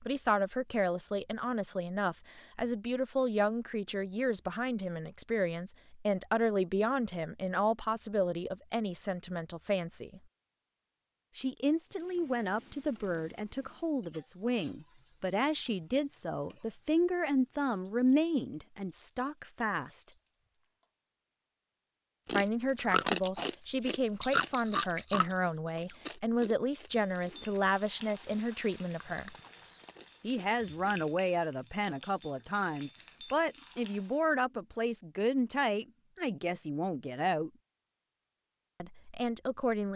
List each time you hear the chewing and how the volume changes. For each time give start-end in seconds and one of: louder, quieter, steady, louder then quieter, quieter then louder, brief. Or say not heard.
22.2-31.4 quieter.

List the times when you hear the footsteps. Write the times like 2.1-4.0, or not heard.
not heard.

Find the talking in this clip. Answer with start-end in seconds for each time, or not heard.
0.0-10.2, 11.3-20.1, 22.3-29.4, 30.2-37.5, 38.8-39.9.